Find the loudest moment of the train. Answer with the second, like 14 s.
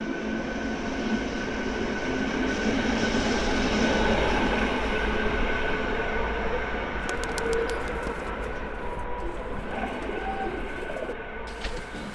4 s.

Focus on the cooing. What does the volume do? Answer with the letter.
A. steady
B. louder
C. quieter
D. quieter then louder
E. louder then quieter
D.